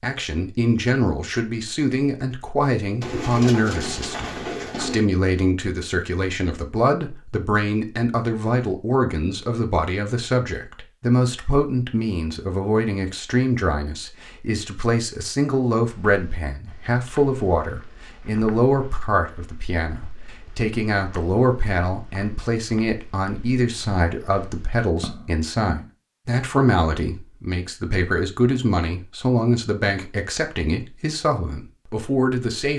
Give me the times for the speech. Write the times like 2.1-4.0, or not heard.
0.0-32.7.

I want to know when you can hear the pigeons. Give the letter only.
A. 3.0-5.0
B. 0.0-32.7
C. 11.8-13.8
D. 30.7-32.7
A.